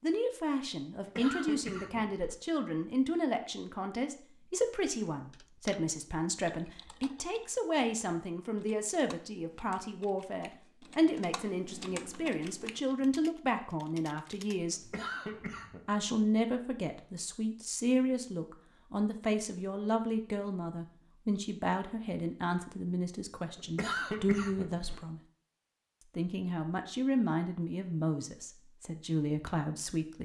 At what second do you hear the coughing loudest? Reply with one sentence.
The loudest moment of the coughing is at 24 seconds.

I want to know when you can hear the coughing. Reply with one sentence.
You can hear the coughing from 0.9 to 2.4 s, from 14.7 to 15.8 s and from 23.6 to 25.0 s.